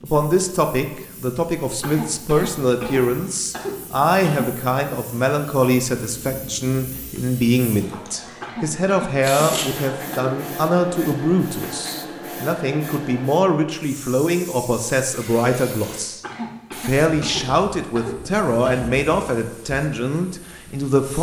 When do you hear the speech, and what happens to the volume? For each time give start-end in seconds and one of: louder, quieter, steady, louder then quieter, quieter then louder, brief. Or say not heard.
0.0-21.1 steady.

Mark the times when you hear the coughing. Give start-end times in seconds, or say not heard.
1.8-4.5, 8.4-10.3, 16.2-18.9.